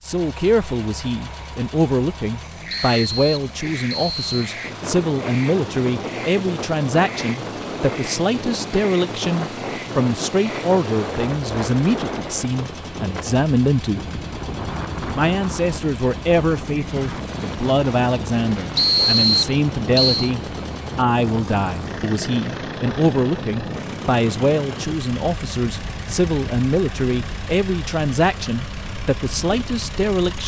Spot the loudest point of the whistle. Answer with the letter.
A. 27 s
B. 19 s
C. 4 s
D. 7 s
B.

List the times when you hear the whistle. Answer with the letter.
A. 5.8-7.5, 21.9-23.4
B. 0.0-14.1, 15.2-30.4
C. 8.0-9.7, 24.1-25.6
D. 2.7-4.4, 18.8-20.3
D.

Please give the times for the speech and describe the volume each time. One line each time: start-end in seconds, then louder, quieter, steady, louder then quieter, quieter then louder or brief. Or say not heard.
0.0-14.1 steady
15.2-30.4 steady.